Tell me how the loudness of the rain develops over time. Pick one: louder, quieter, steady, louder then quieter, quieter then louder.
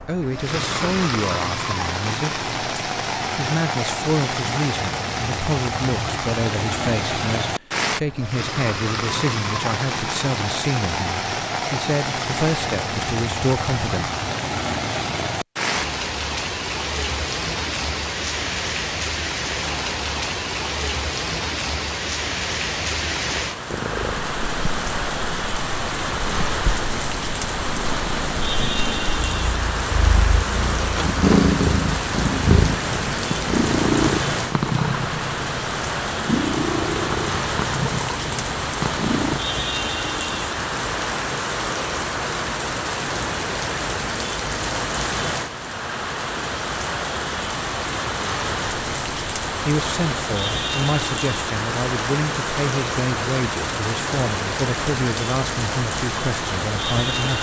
steady.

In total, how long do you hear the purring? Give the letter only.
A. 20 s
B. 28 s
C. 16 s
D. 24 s
C.